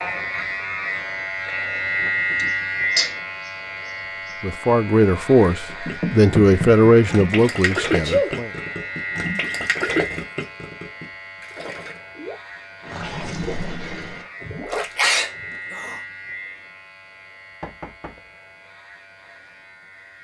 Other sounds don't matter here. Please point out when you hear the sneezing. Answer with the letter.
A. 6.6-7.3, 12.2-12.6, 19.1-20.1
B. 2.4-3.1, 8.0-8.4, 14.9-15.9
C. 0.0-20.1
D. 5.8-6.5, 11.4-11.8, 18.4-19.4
B.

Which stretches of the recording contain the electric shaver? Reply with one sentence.
You can hear the electric shaver from 0.0 to 20.1 s.